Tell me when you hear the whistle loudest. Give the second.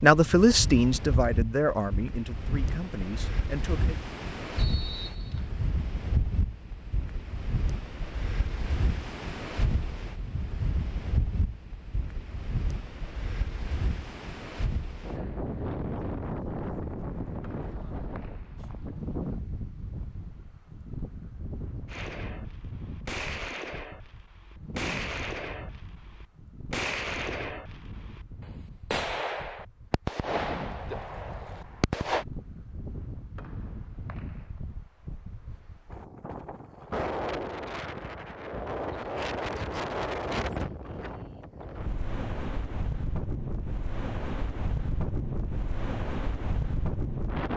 5 s.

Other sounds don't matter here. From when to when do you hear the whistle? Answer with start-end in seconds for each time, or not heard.
4.5-5.5, 17.4-18.8, 33.4-34.5.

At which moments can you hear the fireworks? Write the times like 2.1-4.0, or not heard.
21.9-32.2.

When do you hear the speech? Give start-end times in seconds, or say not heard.
0.0-4.0.